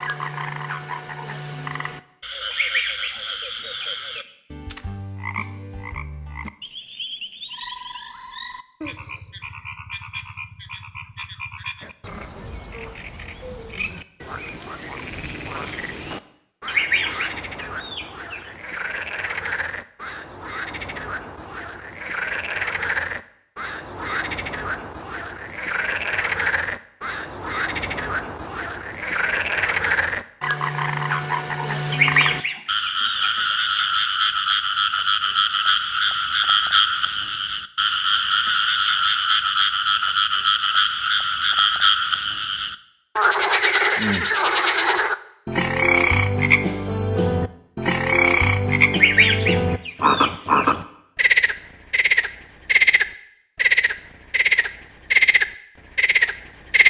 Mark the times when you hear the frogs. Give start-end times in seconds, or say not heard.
0.0-56.8.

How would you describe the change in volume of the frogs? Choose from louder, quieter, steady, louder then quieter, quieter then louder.
louder.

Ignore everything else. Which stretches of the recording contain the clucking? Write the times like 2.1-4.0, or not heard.
2.5-4.2, 16.6-18.4, 31.9-33.3, 48.9-50.6.